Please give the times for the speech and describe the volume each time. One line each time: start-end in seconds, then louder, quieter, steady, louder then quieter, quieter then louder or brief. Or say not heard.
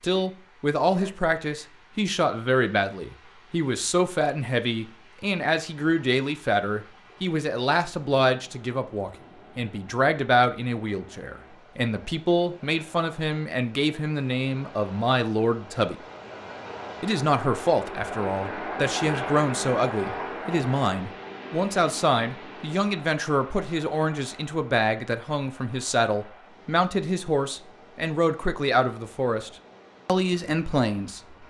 0.0-15.9 steady
17.0-31.4 steady.